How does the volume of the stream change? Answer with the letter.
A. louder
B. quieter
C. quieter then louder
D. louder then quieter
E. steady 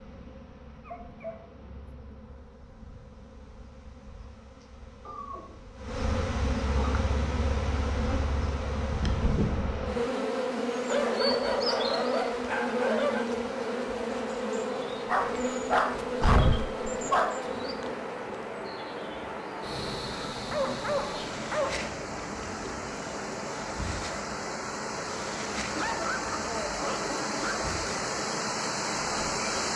A.